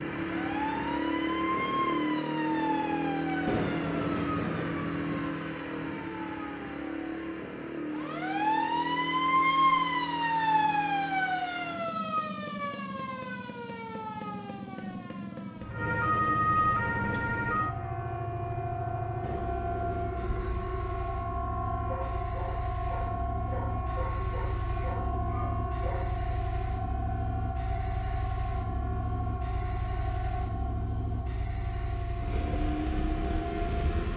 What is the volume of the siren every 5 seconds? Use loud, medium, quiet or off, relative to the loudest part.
medium, loud, loud, loud, medium, medium, medium.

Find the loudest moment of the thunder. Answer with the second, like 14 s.
4 s.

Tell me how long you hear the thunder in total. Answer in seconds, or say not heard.
4 s.